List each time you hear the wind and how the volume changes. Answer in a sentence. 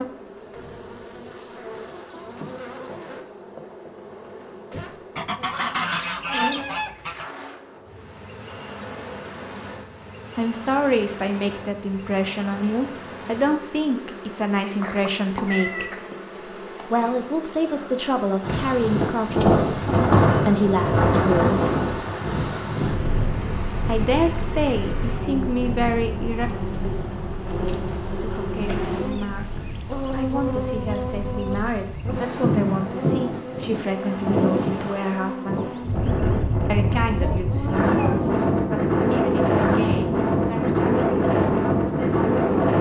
The wind can be heard from 18.4 to 42.7 s, getting quieter then louder.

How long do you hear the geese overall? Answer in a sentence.
You can hear the geese for 2 seconds altogether.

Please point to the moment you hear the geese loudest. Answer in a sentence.
The loudest moment of the geese is at 6 seconds.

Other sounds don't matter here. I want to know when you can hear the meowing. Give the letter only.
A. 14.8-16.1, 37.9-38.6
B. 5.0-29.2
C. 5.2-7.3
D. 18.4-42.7
A.